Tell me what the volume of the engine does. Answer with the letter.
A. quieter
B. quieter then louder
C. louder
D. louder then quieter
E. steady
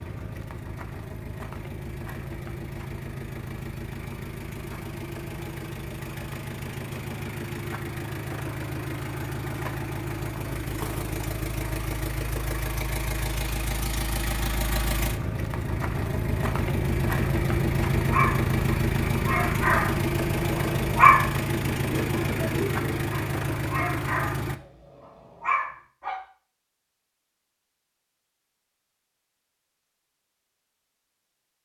C.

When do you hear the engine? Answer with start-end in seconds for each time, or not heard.
0.0-24.6.